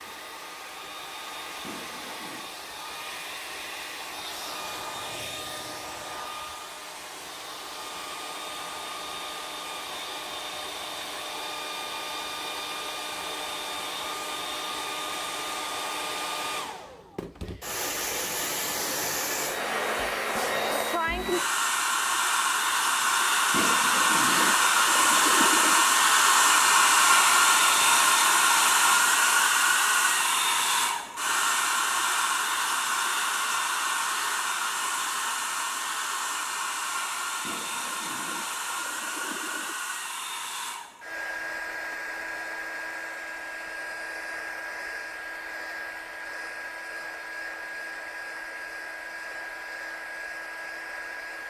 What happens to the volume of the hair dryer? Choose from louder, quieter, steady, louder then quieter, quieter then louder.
louder then quieter.